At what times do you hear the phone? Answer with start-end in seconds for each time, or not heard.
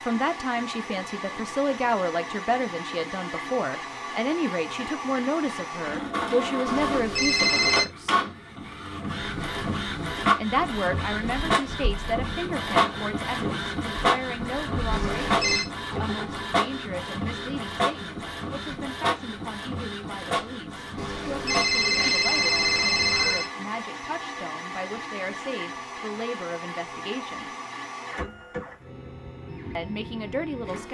6.7-7.8, 14.9-15.7, 20.9-23.5.